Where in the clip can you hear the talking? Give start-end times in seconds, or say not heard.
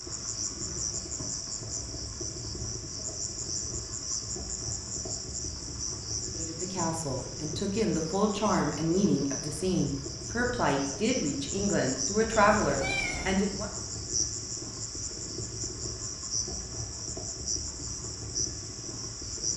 6.3-13.7.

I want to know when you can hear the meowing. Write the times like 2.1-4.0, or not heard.
12.3-13.3.